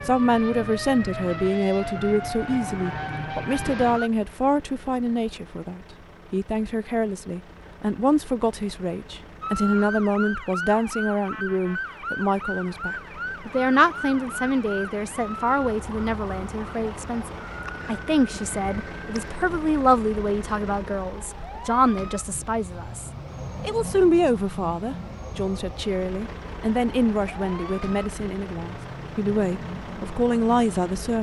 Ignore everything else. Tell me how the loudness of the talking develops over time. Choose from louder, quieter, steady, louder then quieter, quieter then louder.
steady.